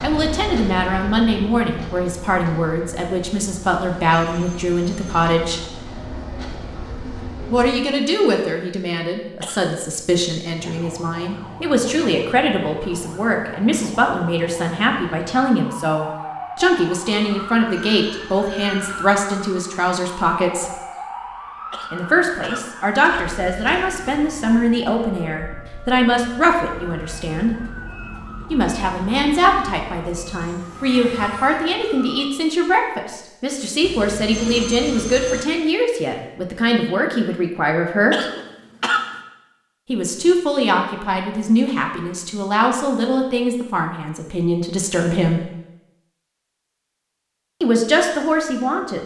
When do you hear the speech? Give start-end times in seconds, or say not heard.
0.0-5.6, 7.5-20.7, 21.9-27.6, 28.5-38.1, 39.9-45.5, 47.6-49.0.